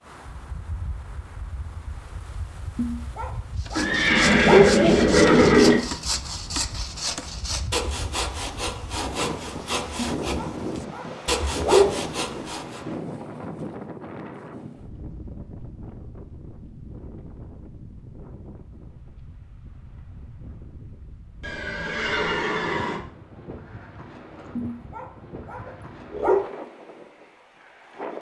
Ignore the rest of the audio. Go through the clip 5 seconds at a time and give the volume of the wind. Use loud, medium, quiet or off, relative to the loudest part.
medium, medium, loud, medium, medium, medium.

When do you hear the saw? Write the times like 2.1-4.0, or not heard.
3.6-12.8.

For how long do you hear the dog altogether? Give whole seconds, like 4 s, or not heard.
6 s.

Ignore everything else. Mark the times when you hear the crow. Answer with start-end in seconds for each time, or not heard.
not heard.